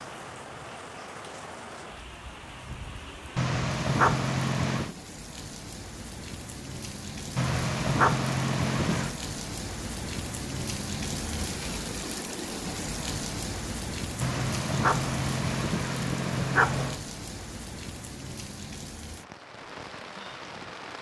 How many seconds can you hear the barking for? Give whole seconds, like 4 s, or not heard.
6 s.